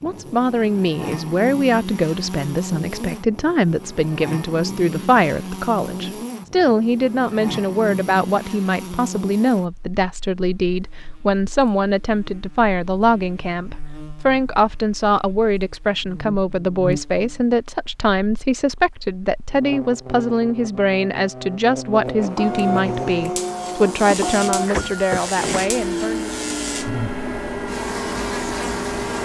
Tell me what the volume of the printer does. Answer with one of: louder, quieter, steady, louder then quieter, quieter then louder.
steady.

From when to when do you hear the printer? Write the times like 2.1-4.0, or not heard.
22.2-29.2.